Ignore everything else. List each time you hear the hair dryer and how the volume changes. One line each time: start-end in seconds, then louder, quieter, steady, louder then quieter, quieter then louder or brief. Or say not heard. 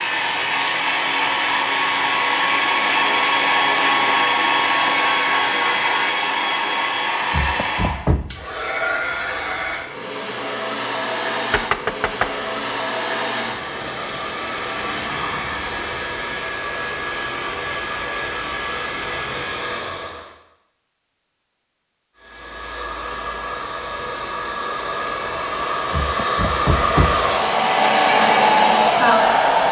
0.0-20.3 quieter
22.1-29.6 louder.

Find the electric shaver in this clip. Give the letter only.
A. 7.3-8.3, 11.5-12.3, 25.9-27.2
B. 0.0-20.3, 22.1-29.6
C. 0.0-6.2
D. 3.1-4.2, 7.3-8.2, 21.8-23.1
C.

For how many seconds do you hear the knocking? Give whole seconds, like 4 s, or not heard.
3 s.